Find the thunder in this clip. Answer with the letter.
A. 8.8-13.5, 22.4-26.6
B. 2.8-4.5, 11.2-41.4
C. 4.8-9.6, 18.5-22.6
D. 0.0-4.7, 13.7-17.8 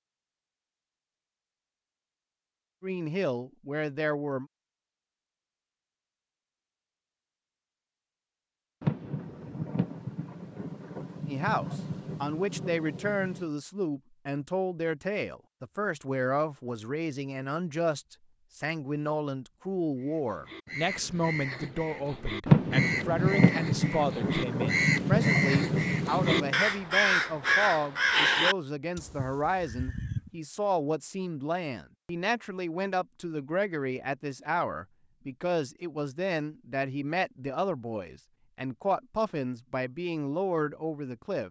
A.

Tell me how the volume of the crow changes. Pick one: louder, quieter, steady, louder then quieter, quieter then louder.
louder.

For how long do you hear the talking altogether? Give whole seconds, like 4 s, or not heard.
32 s.